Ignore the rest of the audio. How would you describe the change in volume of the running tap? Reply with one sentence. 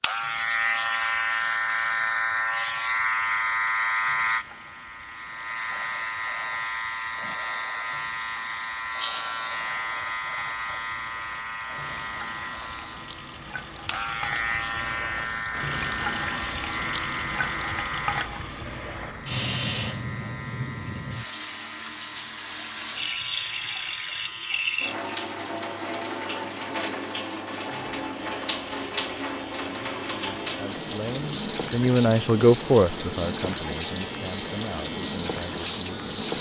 The volume of the running tap goes up.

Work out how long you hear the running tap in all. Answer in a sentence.
You can hear the running tap for 36 seconds altogether.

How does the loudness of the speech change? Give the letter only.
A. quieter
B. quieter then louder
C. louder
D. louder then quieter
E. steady
D.